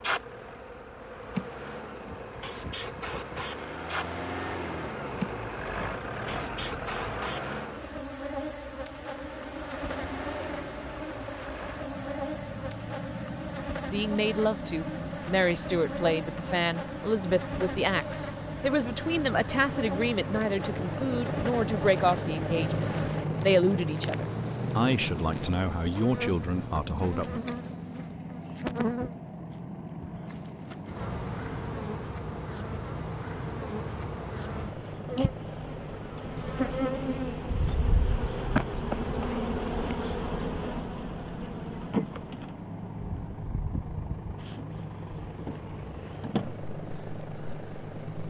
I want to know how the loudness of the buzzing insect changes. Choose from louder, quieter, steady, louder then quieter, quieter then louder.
steady.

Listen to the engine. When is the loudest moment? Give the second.
23 s.